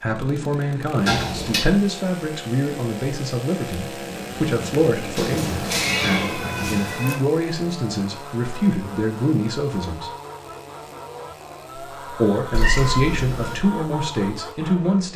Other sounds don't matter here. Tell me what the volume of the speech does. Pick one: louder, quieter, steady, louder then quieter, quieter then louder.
steady.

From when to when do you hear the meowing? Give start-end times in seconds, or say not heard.
1.1-1.6, 5.2-7.2, 12.5-13.6.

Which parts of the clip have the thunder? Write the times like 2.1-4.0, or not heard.
3.8-6.8.